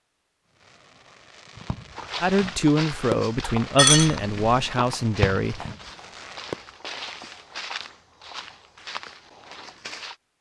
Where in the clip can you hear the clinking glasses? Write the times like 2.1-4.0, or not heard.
3.8-4.7.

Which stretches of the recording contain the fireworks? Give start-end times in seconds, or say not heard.
0.6-6.5.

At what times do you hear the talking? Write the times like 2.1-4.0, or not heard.
2.2-5.7.